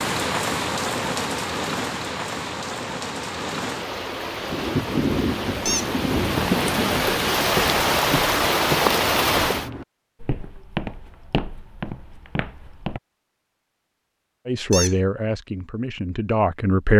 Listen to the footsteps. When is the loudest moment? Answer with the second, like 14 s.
9 s.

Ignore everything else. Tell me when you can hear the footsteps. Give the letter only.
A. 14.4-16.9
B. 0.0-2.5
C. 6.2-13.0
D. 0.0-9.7
C.